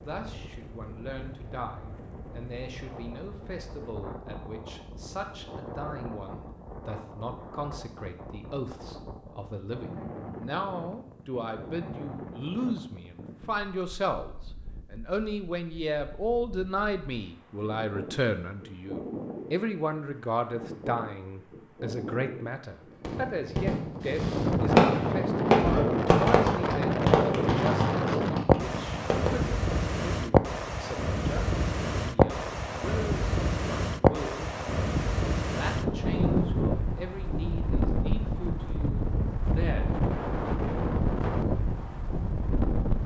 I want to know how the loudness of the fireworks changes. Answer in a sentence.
The loudness of the fireworks goes up, then down.